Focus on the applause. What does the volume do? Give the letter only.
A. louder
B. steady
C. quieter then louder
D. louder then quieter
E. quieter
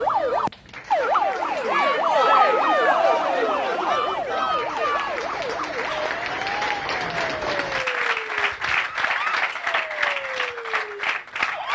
A.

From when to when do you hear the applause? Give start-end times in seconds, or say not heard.
0.0-11.7.